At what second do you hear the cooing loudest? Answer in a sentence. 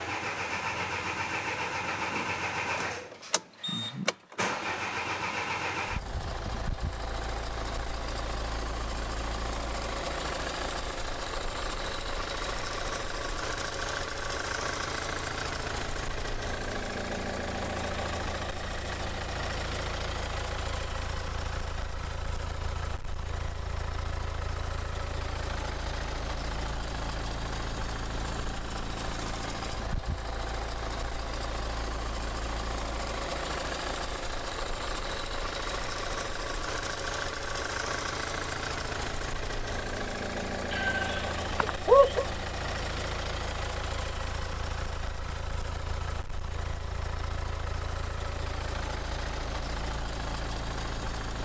The volume of the cooing peaks at 42 seconds.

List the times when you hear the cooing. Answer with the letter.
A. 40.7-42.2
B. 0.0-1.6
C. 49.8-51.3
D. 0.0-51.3
A.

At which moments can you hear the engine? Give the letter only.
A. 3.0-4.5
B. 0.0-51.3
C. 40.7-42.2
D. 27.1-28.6
B.